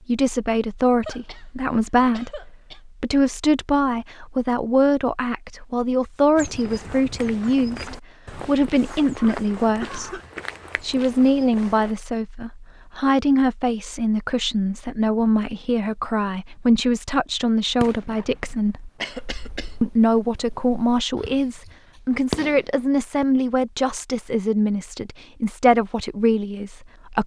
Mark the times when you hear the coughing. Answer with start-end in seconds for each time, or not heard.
1.0-2.8, 9.2-10.2, 19.0-19.8.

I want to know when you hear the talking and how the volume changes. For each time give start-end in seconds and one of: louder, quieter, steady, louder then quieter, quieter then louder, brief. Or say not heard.
0.1-10.2 steady
10.8-18.9 steady
19.8-27.2 steady.